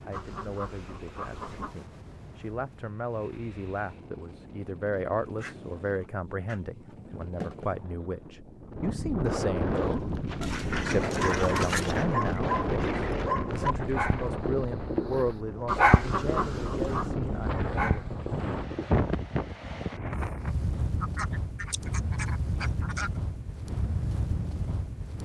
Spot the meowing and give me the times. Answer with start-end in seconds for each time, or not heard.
not heard.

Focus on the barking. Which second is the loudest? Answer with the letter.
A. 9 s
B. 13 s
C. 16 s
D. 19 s
C.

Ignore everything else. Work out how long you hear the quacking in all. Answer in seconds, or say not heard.
9 s.